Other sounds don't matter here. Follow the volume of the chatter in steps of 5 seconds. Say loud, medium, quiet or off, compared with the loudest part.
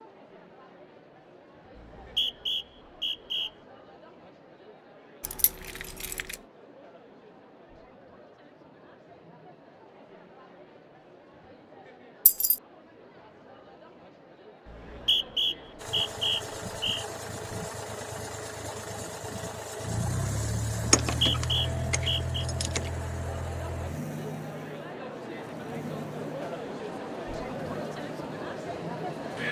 quiet, quiet, quiet, medium, medium, loud.